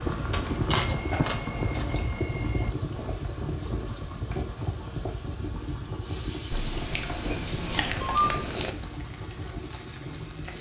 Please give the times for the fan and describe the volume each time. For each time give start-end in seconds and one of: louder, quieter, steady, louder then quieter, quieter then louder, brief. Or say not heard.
0.0-10.5 quieter.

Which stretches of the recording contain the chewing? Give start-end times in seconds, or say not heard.
0.3-2.0, 6.5-8.8.